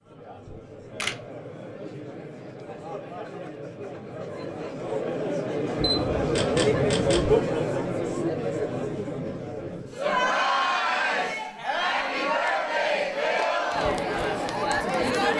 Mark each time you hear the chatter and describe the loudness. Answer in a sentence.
The chatter can be heard from 0.0 to 15.3 s, getting louder.